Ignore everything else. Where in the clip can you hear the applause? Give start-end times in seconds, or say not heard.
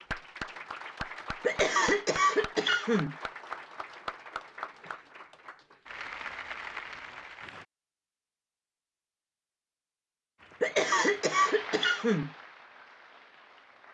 0.0-7.7, 10.3-13.8.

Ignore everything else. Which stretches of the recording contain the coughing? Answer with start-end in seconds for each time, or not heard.
1.4-3.1, 10.6-12.3.